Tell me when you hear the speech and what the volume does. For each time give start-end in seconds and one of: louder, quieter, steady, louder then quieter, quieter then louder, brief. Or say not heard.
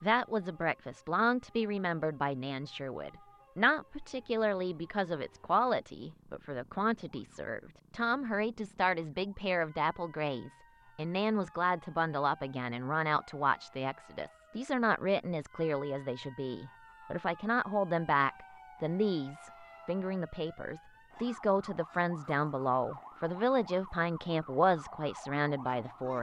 0.0-26.1 steady.